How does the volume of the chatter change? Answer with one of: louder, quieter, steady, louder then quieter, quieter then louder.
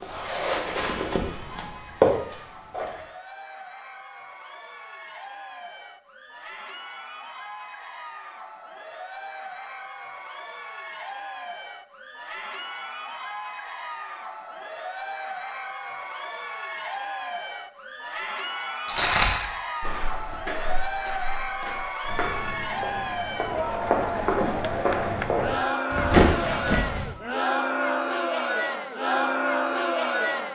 louder.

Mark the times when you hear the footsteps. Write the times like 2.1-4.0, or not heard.
0.0-3.0, 18.9-27.1.